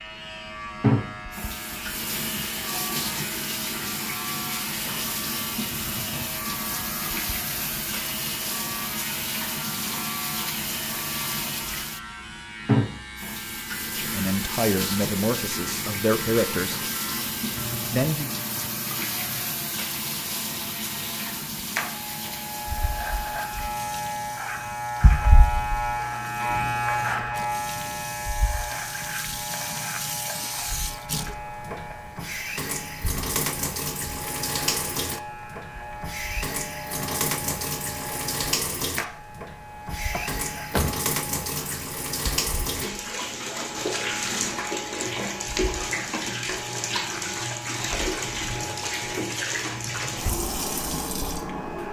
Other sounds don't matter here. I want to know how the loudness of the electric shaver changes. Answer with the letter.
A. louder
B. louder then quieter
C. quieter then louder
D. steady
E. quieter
B.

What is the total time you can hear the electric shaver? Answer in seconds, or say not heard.
52 s.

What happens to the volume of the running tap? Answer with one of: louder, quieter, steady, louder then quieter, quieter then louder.
quieter then louder.